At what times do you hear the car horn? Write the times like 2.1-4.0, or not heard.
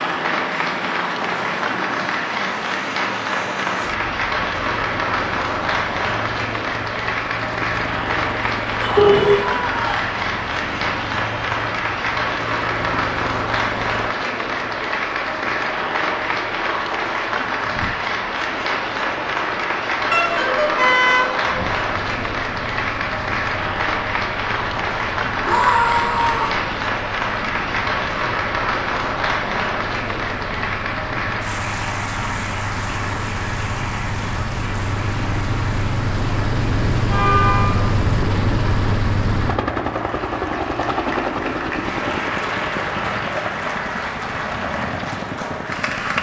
8.9-9.3, 20.1-21.6, 37.0-38.0.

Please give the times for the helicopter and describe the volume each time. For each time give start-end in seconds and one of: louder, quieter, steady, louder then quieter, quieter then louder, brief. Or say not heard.
0.0-46.1 louder.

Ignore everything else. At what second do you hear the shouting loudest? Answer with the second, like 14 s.
26 s.